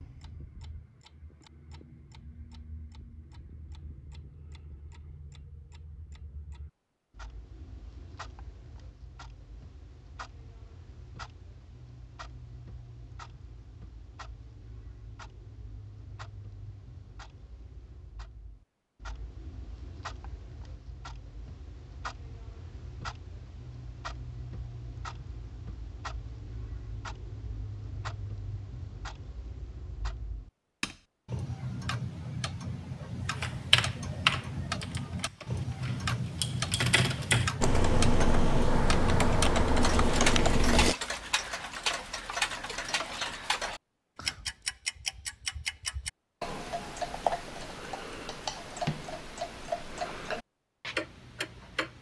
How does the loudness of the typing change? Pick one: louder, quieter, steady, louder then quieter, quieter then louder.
quieter then louder.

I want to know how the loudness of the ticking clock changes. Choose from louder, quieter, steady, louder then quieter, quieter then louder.
louder.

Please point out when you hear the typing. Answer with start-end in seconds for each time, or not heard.
33.4-41.0.